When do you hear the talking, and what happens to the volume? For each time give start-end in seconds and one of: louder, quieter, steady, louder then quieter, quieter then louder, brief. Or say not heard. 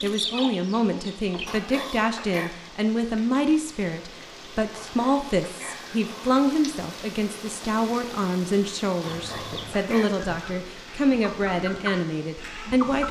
0.0-13.0 steady.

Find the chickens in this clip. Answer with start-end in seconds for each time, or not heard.
0.0-1.6, 9.1-13.0.